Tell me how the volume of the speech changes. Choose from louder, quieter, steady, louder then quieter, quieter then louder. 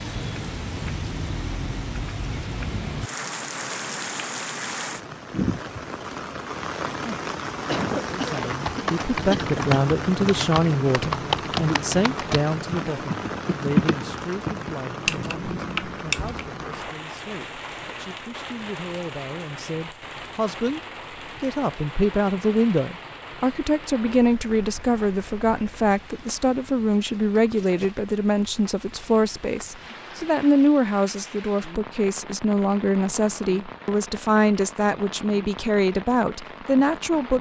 quieter then louder.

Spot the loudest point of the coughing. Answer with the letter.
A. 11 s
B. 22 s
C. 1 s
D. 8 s
D.